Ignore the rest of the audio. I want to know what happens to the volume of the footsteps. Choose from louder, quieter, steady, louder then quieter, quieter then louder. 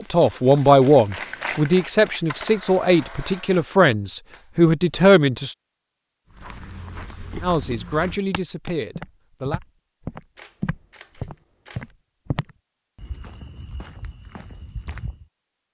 louder then quieter.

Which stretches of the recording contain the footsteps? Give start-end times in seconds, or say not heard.
6.3-15.2.